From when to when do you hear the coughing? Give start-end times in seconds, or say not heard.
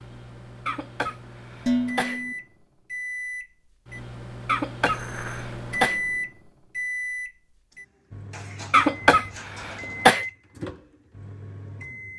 0.7-2.2, 4.5-6.0, 8.7-10.2.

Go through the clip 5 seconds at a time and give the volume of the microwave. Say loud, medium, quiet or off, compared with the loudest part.
medium, loud, medium.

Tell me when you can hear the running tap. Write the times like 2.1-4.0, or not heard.
not heard.